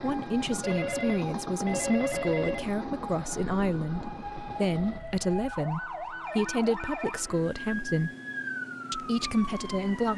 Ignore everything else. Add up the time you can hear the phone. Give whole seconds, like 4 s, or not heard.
3 s.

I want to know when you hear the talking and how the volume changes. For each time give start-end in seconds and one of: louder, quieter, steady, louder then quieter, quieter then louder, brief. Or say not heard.
0.0-8.1 steady
8.9-10.1 brief.